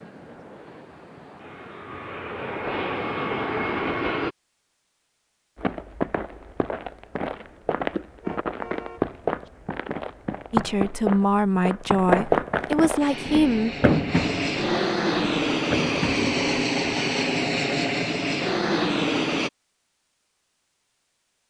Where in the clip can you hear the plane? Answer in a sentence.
You can hear the plane from 0.0 to 4.3 s and from 13.0 to 19.5 s.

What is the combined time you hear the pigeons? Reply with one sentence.
You can't hear the pigeons here.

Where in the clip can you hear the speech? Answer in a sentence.
The speech can be heard from 10.5 to 13.7 s.